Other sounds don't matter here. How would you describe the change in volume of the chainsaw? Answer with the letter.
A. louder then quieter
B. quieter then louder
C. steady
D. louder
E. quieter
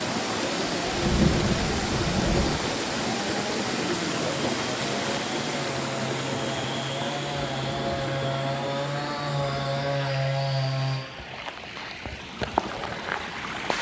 D.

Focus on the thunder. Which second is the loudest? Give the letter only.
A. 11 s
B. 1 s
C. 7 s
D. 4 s
B.